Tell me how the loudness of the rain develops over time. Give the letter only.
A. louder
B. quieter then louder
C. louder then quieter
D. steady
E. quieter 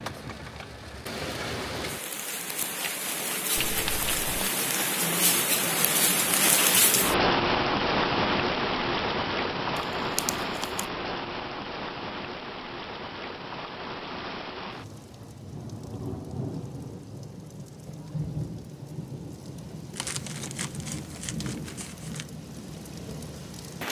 C.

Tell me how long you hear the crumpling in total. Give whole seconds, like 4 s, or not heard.
4 s.